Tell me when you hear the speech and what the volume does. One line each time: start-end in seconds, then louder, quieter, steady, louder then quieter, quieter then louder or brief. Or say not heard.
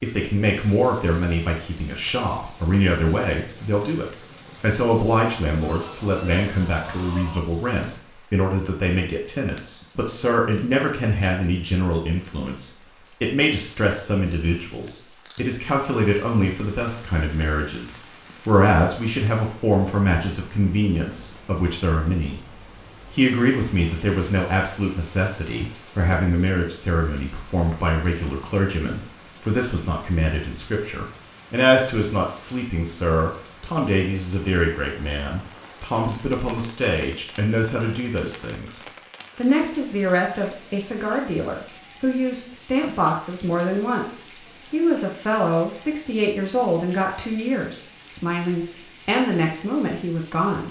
0.0-50.6 steady.